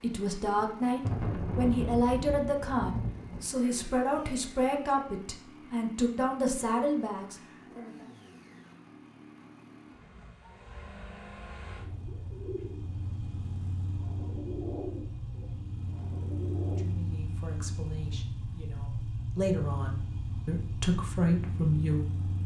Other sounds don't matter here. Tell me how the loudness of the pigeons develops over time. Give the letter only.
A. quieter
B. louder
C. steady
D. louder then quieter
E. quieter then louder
E.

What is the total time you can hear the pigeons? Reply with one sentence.
The pigeons can be heard for 5 seconds in total.